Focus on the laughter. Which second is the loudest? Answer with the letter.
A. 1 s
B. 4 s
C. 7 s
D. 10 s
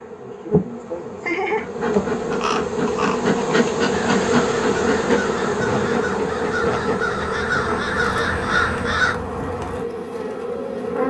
A.